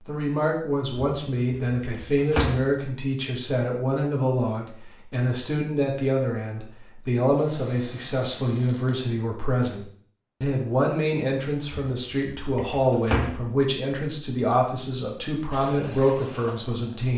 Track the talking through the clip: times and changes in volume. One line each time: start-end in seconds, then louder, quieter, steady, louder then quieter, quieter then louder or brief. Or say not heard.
0.0-17.1 steady.